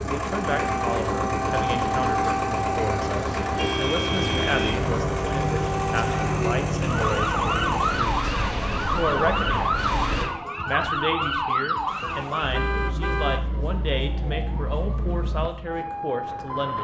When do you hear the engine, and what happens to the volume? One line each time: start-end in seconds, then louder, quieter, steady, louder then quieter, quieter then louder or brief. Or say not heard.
0.0-10.2 steady.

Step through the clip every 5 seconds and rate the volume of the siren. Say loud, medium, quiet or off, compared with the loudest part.
loud, loud, loud, medium.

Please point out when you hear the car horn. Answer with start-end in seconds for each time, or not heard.
3.5-4.8, 11.8-13.5.